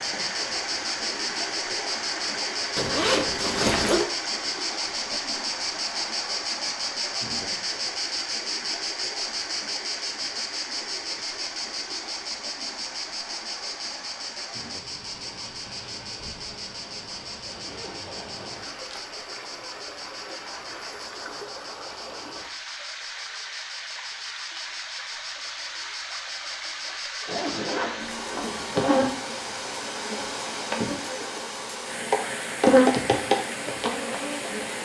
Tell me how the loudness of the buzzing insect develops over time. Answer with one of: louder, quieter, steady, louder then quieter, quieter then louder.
quieter then louder.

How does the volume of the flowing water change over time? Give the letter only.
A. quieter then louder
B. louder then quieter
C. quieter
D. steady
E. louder
A.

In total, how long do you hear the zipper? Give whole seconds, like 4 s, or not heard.
5 s.